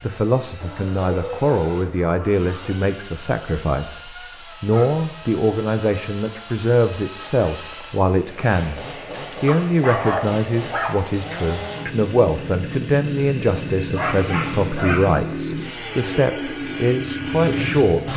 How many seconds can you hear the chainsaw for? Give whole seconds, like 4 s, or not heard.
18 s.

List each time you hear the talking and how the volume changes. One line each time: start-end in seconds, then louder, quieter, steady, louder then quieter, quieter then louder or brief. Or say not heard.
0.0-18.1 steady.